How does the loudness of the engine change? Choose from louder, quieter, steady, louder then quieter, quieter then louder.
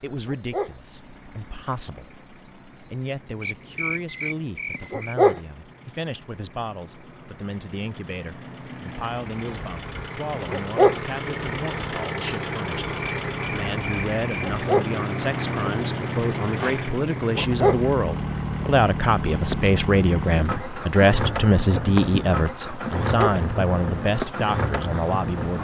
louder.